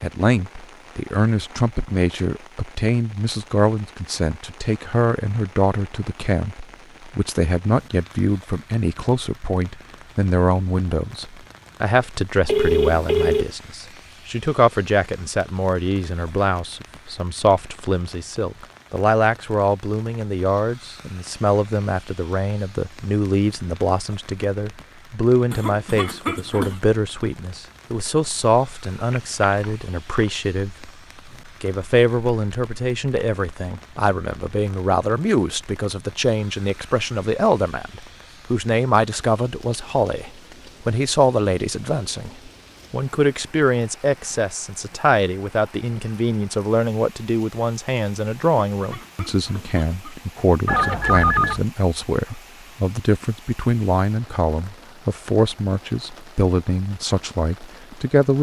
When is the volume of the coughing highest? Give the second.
26 s.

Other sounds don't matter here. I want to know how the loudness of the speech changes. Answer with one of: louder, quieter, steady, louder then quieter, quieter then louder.
steady.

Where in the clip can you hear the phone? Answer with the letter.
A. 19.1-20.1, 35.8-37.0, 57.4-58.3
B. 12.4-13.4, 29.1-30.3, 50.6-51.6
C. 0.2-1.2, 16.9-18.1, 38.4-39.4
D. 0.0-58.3
B.